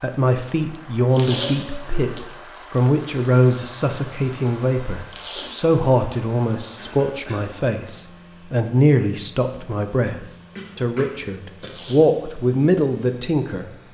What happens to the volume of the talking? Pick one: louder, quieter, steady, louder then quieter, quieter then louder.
steady.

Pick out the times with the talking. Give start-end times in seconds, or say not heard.
0.0-13.7.